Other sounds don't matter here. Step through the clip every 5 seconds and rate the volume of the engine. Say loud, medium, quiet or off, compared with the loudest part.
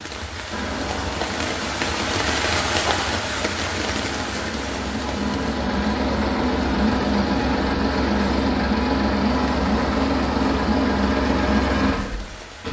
medium, loud, loud.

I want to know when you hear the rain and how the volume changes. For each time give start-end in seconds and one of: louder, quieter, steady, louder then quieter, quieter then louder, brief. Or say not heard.
0.0-12.6 quieter.